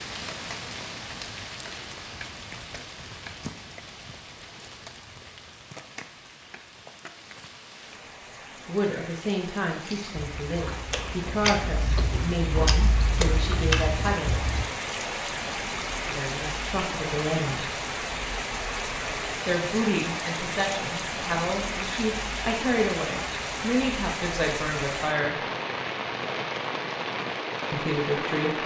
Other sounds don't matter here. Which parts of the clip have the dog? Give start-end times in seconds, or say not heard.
not heard.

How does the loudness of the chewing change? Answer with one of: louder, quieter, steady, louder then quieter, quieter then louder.
louder.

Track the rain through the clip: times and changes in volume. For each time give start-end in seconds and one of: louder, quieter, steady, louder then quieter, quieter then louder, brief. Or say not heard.
0.0-28.6 louder.